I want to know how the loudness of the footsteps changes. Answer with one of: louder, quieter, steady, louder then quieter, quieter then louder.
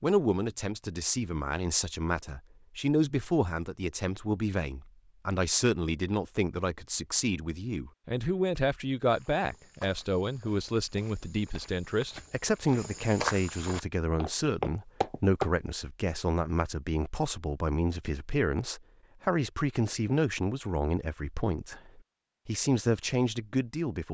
quieter then louder.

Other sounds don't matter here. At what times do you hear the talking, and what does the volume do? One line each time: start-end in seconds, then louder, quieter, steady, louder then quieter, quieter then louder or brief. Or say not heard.
0.0-24.1 steady.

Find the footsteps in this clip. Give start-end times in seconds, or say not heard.
9.1-15.5.